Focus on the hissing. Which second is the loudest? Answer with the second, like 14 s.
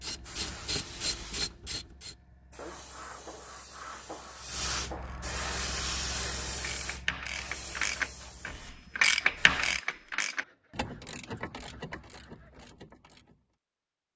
6 s.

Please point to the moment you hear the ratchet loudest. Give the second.
9 s.